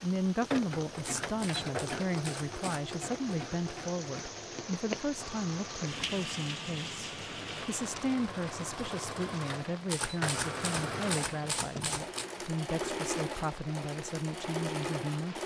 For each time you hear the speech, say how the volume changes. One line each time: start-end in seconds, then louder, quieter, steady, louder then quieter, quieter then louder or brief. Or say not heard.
0.0-15.4 steady.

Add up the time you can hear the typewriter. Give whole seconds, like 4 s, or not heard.
4 s.